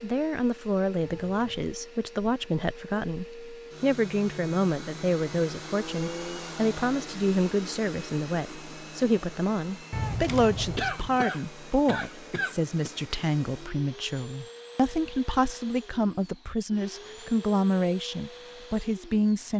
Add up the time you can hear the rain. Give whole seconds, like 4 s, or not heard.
not heard.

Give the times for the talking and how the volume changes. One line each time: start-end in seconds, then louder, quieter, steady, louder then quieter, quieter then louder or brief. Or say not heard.
0.0-19.5 steady.